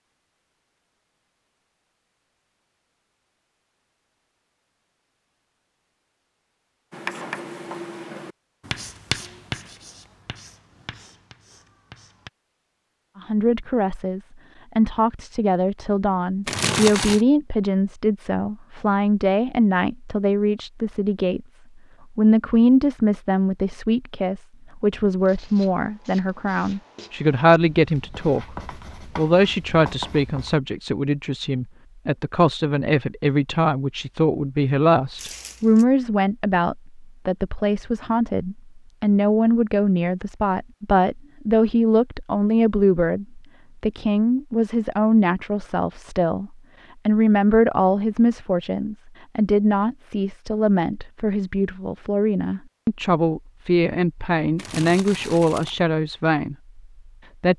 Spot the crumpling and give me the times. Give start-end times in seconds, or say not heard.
16.4-17.2, 35.1-35.9, 54.5-55.8.